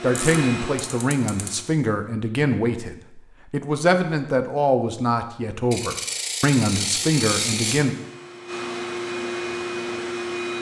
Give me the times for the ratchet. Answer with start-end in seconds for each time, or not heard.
0.1-1.6, 5.7-7.8.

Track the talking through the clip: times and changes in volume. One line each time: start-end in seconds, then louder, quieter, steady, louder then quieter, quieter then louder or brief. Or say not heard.
0.0-8.0 steady.